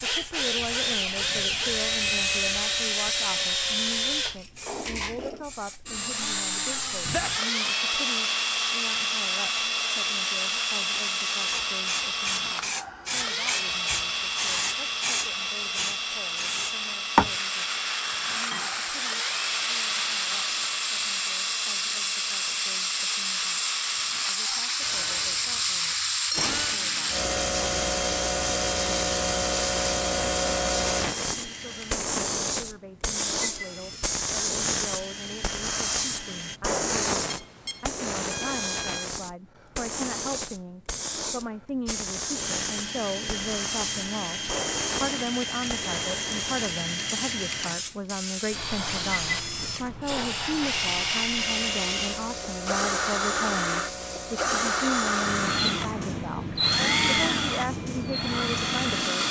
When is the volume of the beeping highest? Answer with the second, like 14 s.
2 s.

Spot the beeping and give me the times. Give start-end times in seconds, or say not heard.
1.1-2.6, 37.3-39.1.